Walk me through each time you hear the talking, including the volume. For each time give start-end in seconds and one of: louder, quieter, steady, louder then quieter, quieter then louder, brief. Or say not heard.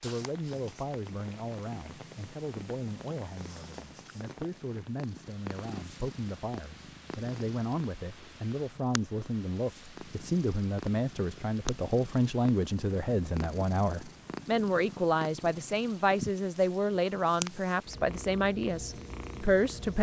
0.0-19.9 louder.